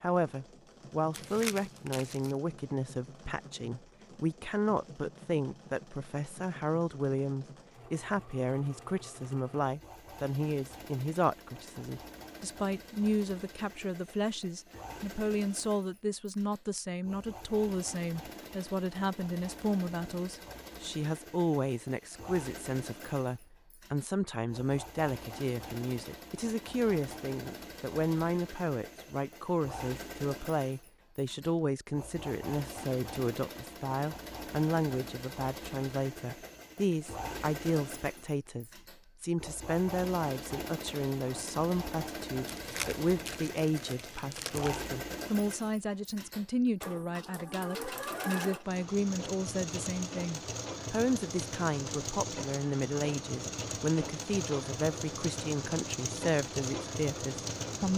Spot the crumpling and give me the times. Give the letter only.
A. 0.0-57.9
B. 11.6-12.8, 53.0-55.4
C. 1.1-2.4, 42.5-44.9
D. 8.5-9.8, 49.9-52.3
C.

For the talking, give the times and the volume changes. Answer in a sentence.
You can hear the talking from 0.0 to 57.9 s, at a steady volume.